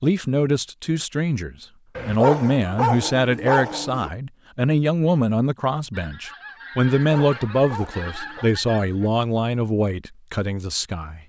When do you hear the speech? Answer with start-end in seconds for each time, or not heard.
0.0-11.2.